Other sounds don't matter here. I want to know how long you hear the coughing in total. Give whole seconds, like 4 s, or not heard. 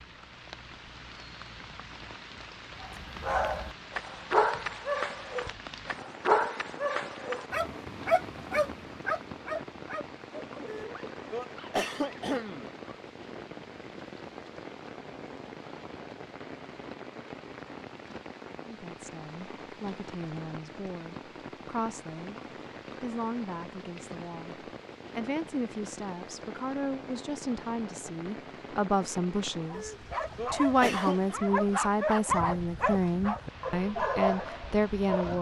4 s.